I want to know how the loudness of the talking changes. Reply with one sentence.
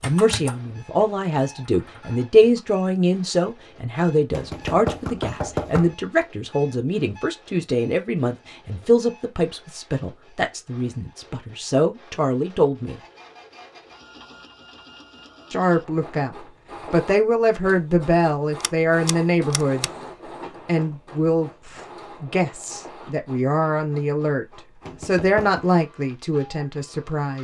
The loudness of the talking stays about the same.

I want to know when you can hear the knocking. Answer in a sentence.
The knocking can be heard from 4.3 to 6.0 s and from 24.9 to 25.6 s.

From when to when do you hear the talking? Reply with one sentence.
You can hear the talking from 0.0 to 13.0 s, from 15.5 to 19.9 s and from 20.6 to 27.3 s.